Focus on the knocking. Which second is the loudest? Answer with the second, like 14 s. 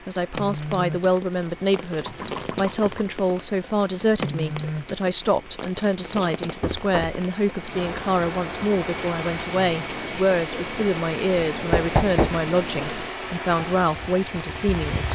12 s.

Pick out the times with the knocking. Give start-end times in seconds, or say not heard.
2.0-3.0, 6.6-7.2, 11.7-12.4.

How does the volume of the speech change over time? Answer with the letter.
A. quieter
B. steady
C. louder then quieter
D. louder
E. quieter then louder
B.